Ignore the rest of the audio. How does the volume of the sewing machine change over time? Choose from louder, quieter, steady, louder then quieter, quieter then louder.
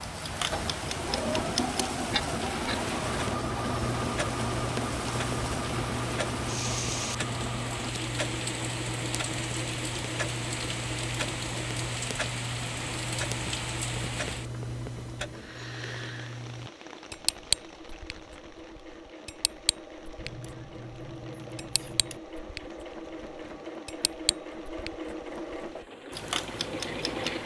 quieter then louder.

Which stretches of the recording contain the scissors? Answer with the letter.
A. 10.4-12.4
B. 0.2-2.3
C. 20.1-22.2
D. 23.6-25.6
C.